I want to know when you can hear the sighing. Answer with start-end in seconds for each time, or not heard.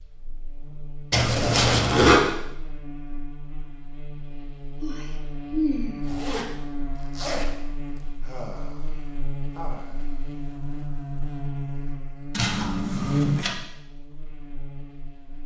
4.8-6.0, 8.2-8.9, 9.6-10.2.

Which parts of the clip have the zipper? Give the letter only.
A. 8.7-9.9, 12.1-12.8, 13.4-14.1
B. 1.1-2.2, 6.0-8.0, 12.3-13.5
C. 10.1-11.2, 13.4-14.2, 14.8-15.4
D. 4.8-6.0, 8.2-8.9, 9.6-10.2
B.